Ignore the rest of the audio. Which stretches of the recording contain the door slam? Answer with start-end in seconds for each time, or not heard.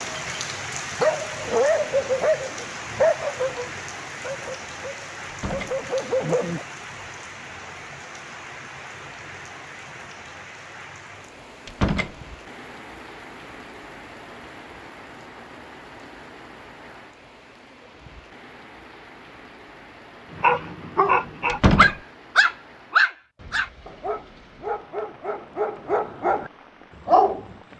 5.2-5.8, 11.7-12.2, 21.4-21.9.